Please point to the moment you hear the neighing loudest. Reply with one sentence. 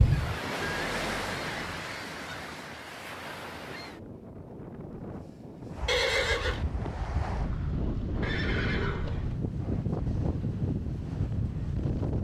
The loudest moment of the neighing is at 6 seconds.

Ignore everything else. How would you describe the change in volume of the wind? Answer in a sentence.
The volume of the wind goes down, then up.